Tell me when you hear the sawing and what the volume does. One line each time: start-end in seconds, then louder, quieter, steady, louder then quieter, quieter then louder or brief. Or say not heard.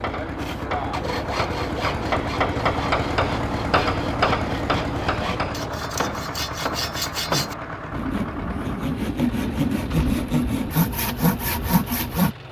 0.3-12.3 louder.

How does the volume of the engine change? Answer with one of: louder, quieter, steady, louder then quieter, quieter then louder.
quieter.